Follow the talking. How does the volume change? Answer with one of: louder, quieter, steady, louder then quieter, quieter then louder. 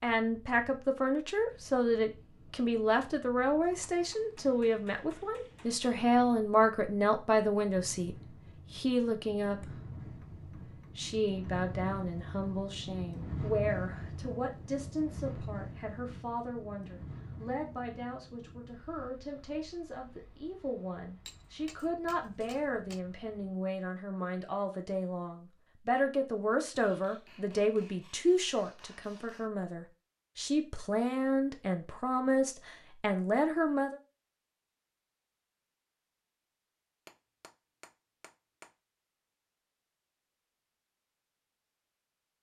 quieter then louder.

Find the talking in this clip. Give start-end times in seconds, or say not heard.
0.0-9.7, 10.7-34.0.